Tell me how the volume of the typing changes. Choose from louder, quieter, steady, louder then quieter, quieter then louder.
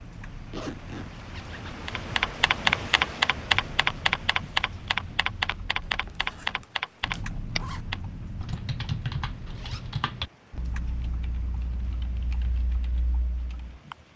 quieter.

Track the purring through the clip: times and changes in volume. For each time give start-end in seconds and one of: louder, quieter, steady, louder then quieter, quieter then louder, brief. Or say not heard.
not heard.